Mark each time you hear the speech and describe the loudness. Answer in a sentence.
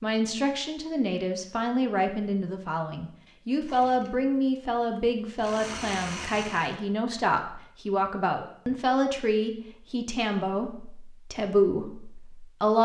The speech can be heard from 0.0 to 12.7 s, at a steady volume.